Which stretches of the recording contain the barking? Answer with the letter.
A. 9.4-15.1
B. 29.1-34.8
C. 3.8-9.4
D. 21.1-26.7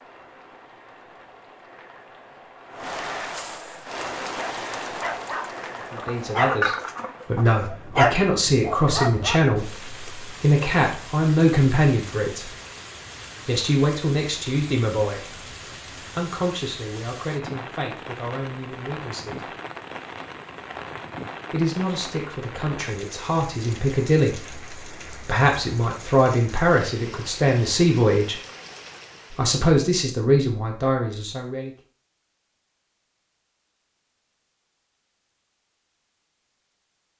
C.